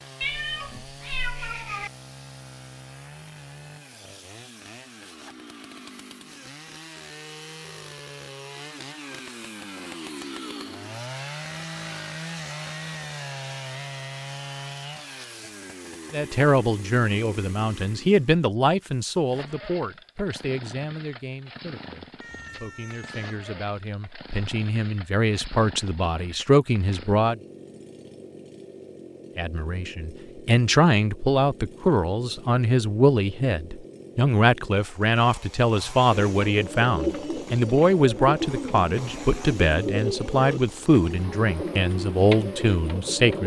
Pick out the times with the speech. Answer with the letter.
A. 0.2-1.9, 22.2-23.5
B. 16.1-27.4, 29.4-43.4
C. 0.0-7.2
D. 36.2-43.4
B.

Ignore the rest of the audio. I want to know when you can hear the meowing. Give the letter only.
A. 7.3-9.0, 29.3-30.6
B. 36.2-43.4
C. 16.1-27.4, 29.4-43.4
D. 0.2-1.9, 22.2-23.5
D.